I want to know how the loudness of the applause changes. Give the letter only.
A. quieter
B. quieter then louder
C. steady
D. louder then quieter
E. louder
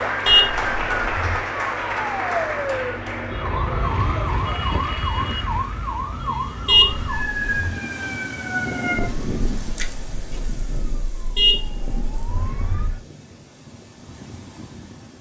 A.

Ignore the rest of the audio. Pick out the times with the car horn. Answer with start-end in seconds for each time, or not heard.
0.2-1.4, 6.7-7.8, 11.3-13.0.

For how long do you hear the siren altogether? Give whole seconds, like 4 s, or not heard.
13 s.